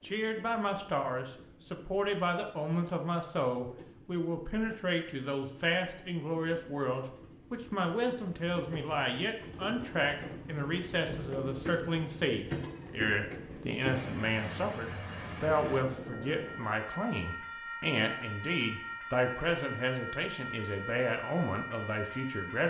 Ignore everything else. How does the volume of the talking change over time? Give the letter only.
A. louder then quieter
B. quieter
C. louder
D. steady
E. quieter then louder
D.